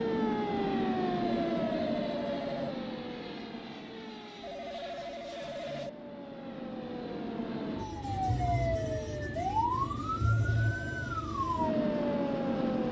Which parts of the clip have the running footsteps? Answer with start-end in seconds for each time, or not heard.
not heard.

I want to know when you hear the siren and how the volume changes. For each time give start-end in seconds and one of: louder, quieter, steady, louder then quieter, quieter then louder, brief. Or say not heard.
0.0-12.8 quieter then louder.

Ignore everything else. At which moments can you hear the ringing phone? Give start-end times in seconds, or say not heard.
1.4-2.8, 4.4-5.9, 10.2-11.0.